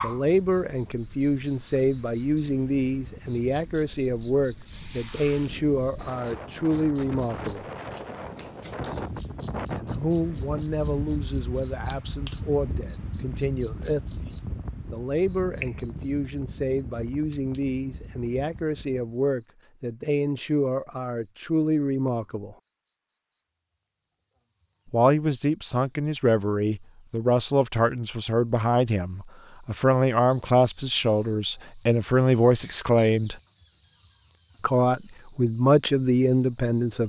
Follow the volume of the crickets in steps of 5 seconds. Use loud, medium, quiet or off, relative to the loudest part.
loud, loud, loud, medium, quiet, quiet, loud, loud.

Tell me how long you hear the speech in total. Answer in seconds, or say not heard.
31 s.